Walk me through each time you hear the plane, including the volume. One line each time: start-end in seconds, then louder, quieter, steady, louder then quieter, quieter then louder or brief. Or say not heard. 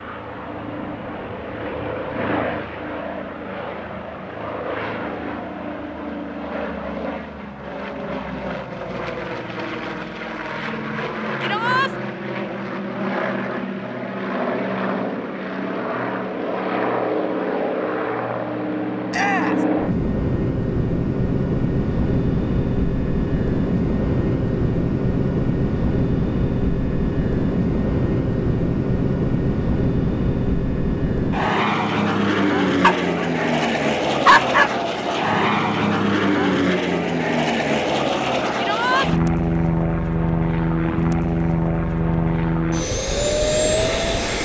0.0-44.4 louder.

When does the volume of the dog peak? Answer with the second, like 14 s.
34 s.